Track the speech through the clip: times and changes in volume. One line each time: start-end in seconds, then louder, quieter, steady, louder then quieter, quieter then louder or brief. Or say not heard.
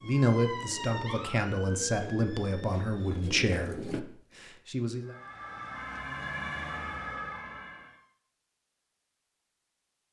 0.0-5.2 quieter.